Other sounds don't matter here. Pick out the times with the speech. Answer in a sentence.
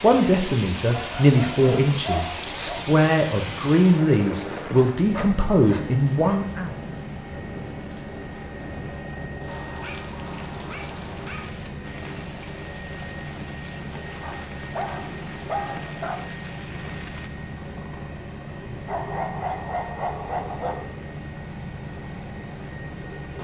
The speech can be heard from 0.0 to 6.8 s.